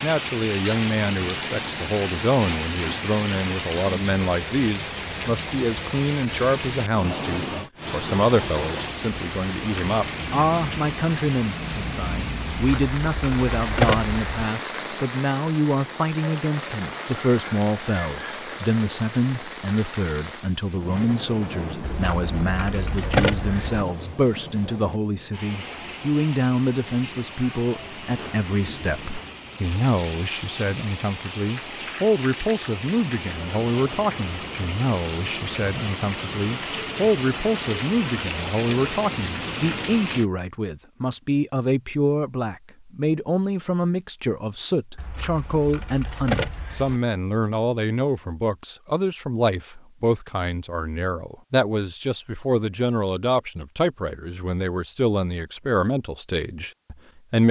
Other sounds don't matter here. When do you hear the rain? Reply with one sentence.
The rain can be heard from 0.0 to 40.2 s.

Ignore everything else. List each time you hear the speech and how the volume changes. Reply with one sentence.
You can hear the speech from 0.0 to 57.4 s, at a steady volume.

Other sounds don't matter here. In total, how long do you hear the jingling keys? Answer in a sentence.
The jingling keys can be heard for 6 seconds in total.